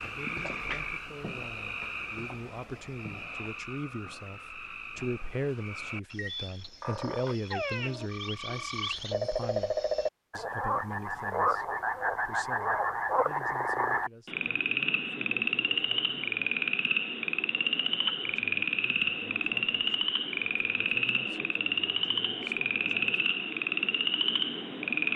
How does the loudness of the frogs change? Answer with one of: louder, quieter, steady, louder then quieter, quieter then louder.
louder.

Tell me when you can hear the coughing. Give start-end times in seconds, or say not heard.
not heard.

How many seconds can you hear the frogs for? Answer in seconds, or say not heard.
25 s.